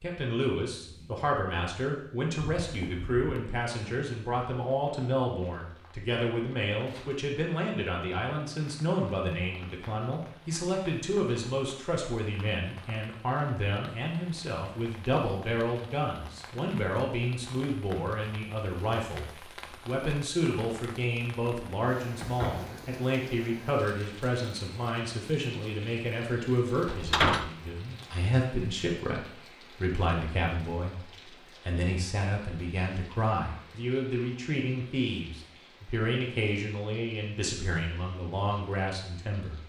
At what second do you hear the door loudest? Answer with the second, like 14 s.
27 s.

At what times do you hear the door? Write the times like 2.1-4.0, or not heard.
2.4-3.3, 22.2-22.9, 26.9-27.5.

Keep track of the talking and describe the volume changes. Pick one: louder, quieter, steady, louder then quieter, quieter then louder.
steady.